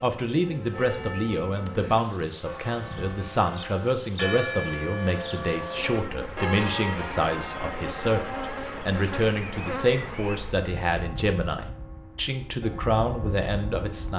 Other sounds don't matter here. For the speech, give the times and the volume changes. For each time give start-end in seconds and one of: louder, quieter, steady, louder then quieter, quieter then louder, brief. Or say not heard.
0.0-14.1 steady.